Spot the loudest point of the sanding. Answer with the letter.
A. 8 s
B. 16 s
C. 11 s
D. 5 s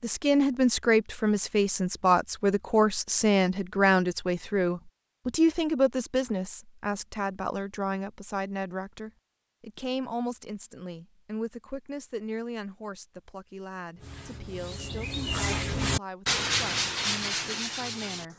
B.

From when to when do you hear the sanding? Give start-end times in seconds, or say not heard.
13.9-18.3.